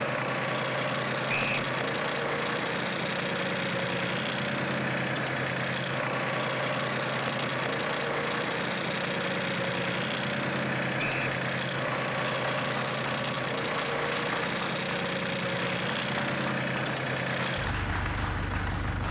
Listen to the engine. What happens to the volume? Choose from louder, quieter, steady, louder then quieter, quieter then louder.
steady.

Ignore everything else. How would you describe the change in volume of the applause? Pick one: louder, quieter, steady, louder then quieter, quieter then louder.
steady.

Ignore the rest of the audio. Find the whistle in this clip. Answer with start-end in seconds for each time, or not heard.
1.2-1.7, 10.9-11.4.